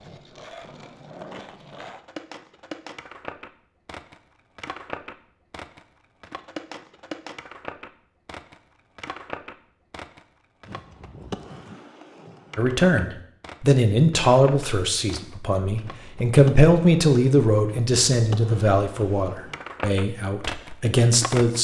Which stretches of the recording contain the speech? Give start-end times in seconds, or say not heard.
12.6-21.5.